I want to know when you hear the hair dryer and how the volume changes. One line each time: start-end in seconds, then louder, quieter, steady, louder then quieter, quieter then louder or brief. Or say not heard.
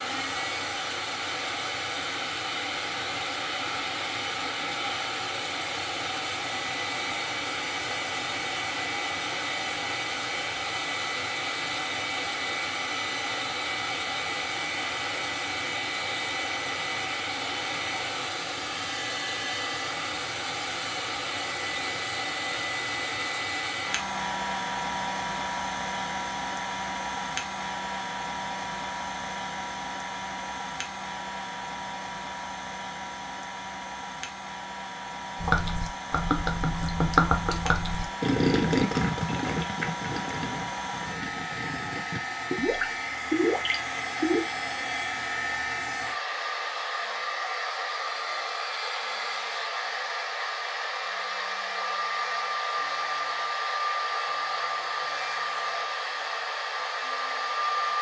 0.0-57.9 steady.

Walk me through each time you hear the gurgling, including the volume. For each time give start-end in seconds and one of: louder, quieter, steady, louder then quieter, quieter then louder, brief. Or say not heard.
35.4-44.4 quieter then louder.